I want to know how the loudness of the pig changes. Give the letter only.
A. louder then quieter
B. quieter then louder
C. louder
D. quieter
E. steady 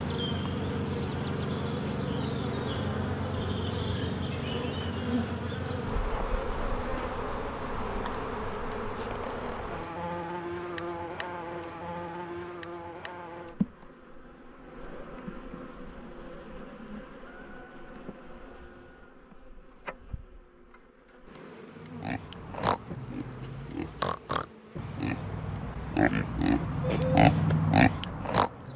C.